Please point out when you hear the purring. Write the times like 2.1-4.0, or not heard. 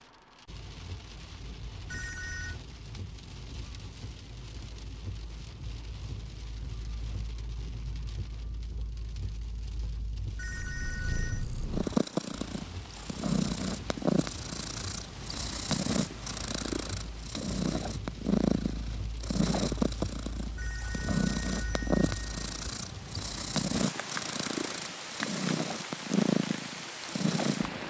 10.4-27.8.